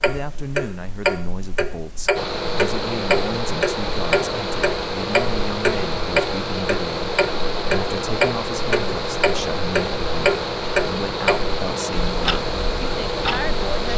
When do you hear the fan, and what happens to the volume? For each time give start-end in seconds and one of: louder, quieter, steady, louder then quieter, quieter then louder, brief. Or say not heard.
2.1-13.9 steady.